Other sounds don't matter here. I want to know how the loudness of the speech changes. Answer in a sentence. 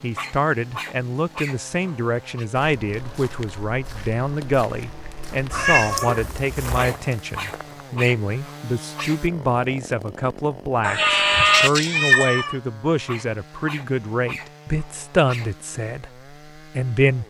The loudness of the speech stays about the same.